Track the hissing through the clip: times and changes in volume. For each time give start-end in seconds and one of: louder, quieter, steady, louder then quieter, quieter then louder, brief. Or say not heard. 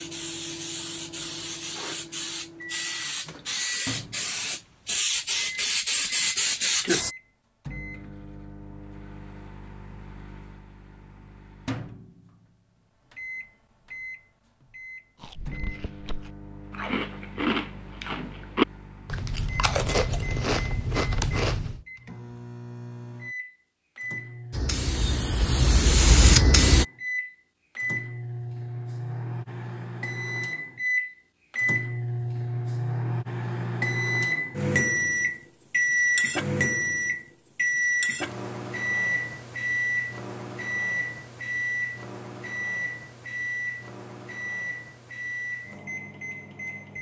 0.0-7.2 louder
24.5-26.9 brief.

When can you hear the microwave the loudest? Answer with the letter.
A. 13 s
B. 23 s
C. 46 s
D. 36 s
D.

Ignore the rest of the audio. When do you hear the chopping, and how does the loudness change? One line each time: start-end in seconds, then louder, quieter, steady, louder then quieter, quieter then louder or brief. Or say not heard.
not heard.